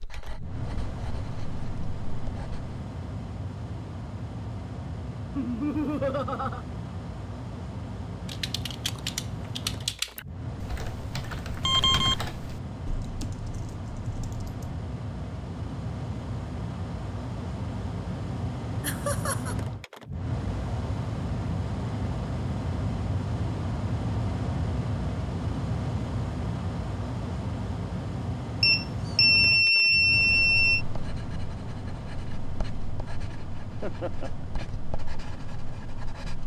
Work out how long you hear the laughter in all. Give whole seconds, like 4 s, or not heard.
3 s.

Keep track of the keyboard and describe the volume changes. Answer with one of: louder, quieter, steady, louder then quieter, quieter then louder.
quieter.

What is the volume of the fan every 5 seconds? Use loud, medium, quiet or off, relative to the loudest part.
medium, medium, medium, loud, loud, loud, medium, medium.